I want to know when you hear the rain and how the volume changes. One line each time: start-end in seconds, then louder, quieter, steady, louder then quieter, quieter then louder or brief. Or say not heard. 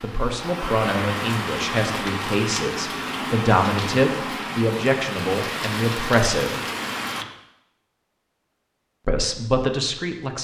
0.0-7.2 steady.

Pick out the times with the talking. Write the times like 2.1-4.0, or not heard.
0.0-6.5, 9.1-10.3.